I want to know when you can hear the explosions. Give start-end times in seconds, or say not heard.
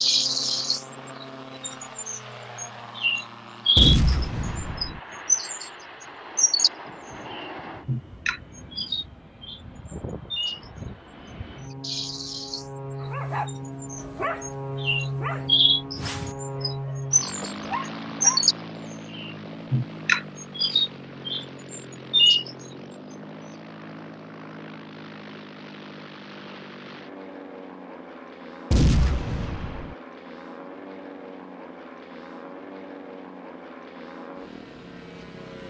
3.8-5.0, 28.7-29.9.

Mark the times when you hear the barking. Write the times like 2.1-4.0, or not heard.
13.0-18.4.